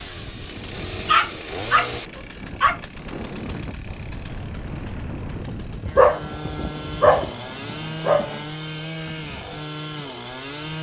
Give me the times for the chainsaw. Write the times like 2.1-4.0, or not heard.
0.0-10.7.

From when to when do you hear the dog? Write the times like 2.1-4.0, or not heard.
1.1-2.8, 6.0-8.4.